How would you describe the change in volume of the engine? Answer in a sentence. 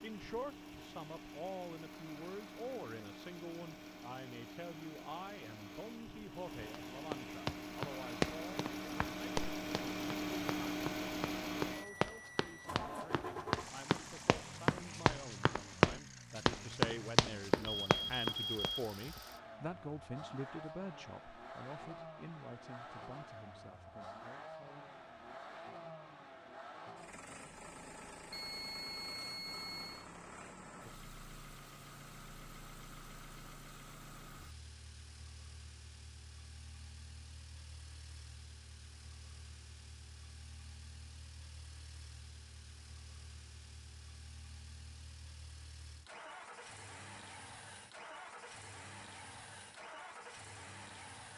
The loudness of the engine goes down.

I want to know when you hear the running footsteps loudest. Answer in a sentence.
The loudest moment of the running footsteps is at 16 seconds.